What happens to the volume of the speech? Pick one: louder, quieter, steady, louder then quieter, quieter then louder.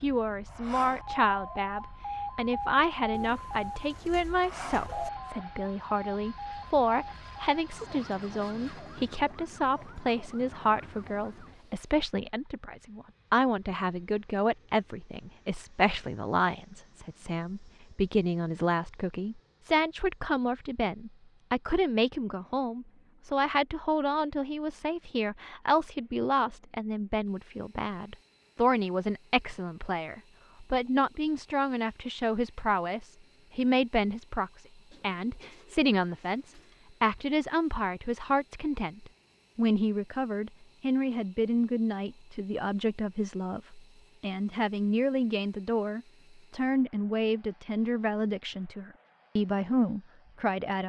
steady.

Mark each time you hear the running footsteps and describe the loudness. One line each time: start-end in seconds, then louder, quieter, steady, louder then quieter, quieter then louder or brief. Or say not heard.
not heard.